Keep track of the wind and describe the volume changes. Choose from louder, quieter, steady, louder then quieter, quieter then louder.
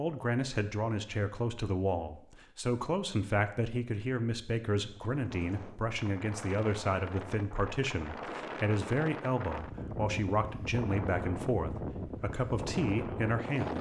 louder.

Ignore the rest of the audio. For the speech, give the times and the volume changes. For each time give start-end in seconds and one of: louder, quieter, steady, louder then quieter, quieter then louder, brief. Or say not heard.
0.0-13.7 steady.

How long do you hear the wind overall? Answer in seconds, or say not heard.
9 s.